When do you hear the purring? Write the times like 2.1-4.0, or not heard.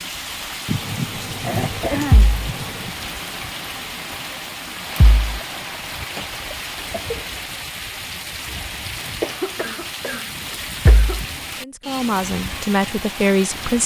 not heard.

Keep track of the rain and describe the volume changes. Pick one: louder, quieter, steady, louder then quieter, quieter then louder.
steady.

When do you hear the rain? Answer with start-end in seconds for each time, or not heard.
0.0-13.8.